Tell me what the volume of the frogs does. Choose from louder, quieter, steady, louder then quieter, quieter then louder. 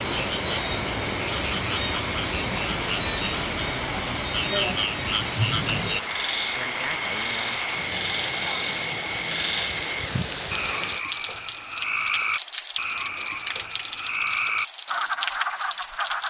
steady.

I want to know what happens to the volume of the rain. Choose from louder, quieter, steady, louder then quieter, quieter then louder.
steady.